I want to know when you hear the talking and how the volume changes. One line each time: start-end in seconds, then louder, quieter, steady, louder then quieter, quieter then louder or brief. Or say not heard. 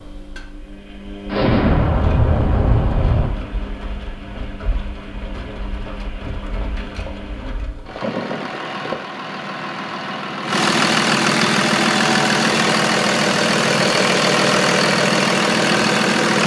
not heard.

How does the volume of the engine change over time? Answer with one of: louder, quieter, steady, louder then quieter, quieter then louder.
louder.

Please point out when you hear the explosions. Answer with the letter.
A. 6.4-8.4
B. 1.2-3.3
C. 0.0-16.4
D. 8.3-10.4
B.